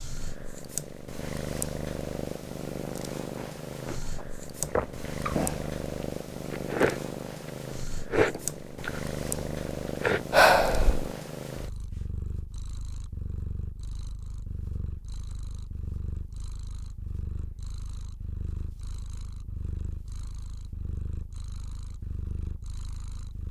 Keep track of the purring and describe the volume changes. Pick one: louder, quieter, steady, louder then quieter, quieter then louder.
quieter.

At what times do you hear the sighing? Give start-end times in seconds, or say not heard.
10.3-11.1.